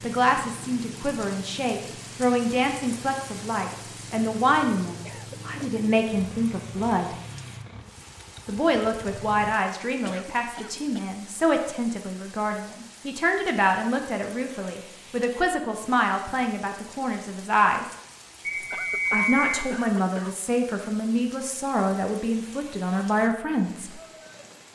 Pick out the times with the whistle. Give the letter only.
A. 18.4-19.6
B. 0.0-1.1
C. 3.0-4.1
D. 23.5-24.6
A.